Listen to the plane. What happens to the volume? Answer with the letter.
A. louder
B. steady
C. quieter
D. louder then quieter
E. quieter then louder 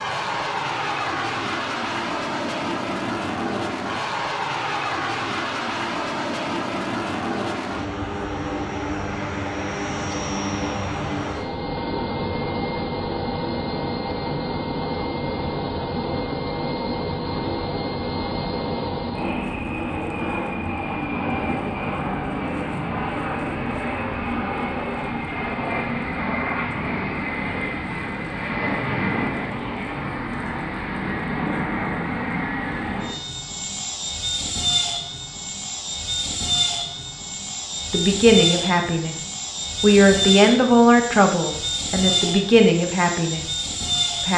B.